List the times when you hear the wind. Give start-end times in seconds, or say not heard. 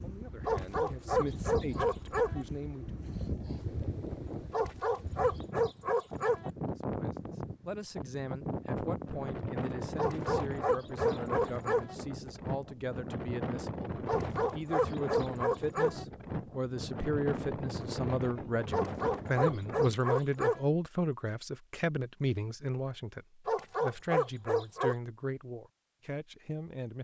0.0-19.9.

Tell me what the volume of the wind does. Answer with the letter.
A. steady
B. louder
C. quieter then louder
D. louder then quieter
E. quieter
A.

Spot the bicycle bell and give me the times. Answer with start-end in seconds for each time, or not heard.
not heard.